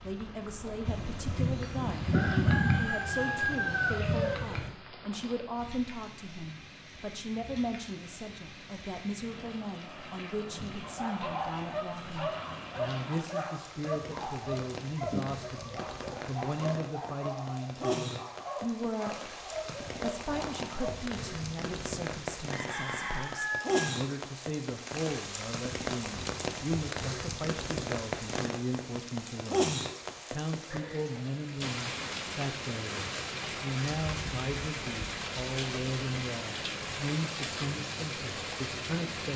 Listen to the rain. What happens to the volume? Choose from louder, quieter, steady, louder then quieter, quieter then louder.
louder.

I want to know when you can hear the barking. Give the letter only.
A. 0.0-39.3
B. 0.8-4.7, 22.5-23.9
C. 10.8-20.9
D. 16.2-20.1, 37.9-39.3
C.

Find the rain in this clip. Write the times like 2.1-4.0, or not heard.
0.0-39.3.